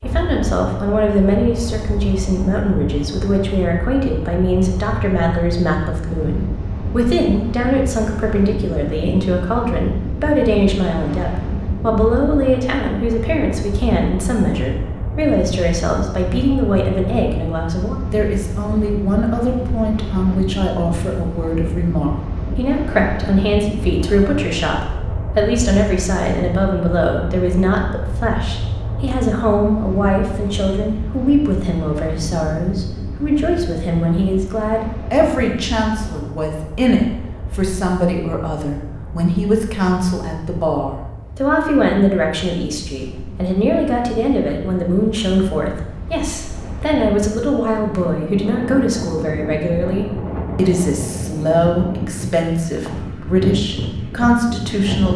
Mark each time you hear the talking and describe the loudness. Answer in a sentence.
The talking can be heard from 0.0 to 55.1 s, at a steady volume.